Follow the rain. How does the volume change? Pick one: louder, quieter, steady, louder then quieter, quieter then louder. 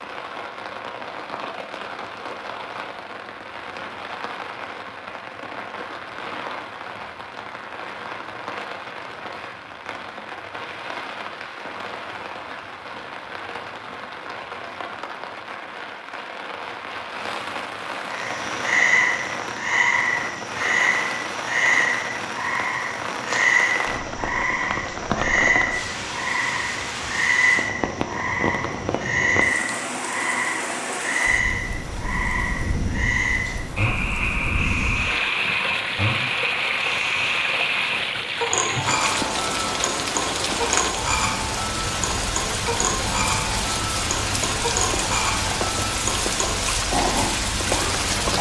louder.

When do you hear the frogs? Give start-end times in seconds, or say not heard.
18.1-48.3.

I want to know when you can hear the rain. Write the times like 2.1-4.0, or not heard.
0.0-48.3.